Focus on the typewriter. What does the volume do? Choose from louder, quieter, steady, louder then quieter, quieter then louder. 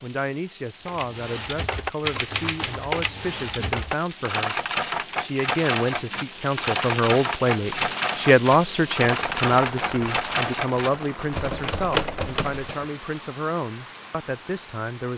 steady.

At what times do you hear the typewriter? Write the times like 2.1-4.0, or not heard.
0.8-12.8.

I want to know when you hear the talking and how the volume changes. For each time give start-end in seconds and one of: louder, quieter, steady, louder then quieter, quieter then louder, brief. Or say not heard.
0.0-15.1 louder then quieter.